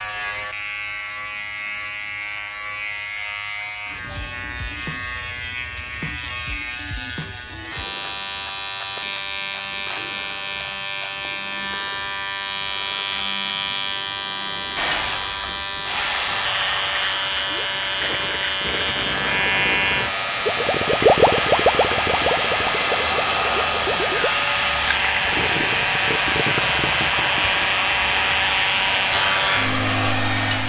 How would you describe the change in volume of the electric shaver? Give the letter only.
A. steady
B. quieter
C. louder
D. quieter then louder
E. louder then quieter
C.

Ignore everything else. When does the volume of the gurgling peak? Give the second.
21 s.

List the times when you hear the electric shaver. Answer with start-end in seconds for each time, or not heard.
0.0-30.6.